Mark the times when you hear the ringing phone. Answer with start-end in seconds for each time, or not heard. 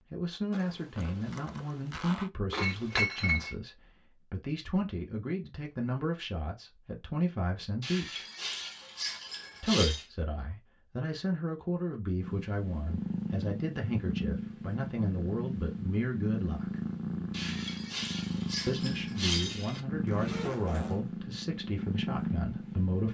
not heard.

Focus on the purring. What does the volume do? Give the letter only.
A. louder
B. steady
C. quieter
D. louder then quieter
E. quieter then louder
B.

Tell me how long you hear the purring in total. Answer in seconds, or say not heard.
11 s.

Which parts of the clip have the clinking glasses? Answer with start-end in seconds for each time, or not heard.
2.5-3.5, 7.8-10.1, 17.3-19.8.